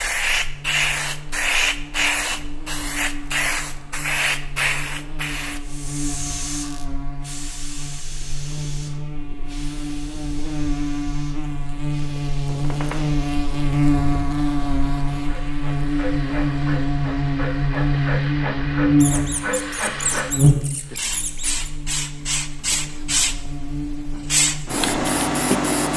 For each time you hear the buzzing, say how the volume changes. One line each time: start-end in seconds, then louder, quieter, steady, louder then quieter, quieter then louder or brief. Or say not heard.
0.0-25.9 louder then quieter.